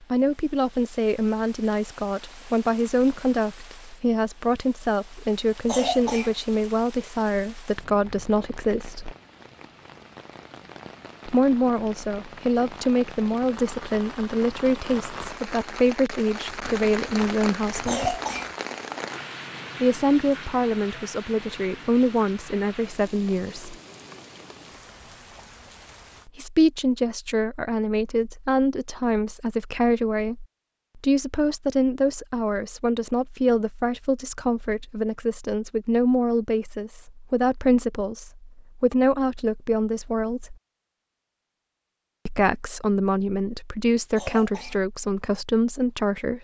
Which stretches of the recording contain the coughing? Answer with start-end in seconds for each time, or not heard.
5.7-6.3, 17.9-18.6, 44.1-44.9.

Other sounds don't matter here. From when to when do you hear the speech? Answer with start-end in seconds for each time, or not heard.
0.1-9.2, 11.2-18.1, 19.8-23.8, 26.2-40.5, 42.2-46.4.